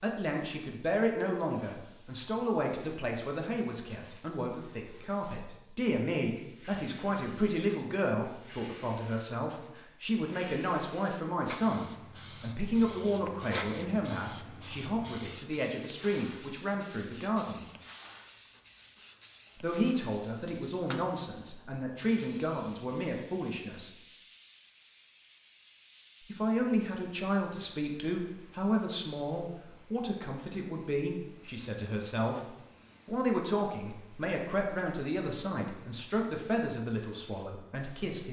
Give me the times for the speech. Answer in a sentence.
You can hear the speech from 0.0 to 17.6 s, from 19.6 to 23.9 s and from 26.3 to 38.2 s.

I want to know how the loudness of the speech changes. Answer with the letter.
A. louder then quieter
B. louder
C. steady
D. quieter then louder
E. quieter
C.